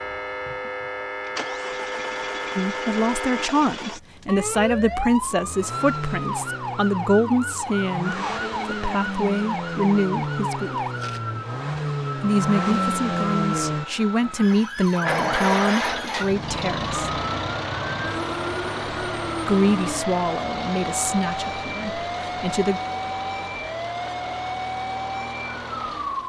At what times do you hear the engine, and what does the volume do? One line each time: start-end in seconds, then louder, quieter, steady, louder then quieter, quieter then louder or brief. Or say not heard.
0.0-26.2 louder then quieter.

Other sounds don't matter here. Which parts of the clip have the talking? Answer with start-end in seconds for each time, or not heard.
2.5-10.8, 12.2-17.2, 19.4-22.8.